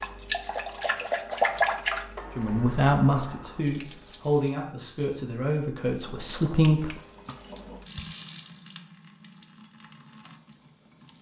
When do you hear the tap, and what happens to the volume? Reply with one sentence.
The tap can be heard from 0.0 to 4.5 s, getting louder then quieter; and from 5.8 to 11.1 s, getting louder then quieter.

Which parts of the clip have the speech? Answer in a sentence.
The speech can be heard from 2.4 to 6.9 s.